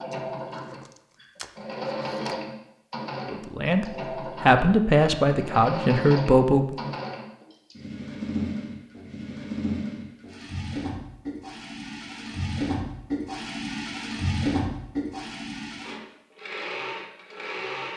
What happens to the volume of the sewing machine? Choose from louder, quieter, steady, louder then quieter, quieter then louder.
steady.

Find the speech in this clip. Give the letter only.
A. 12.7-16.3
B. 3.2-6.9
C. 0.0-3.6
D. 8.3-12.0
B.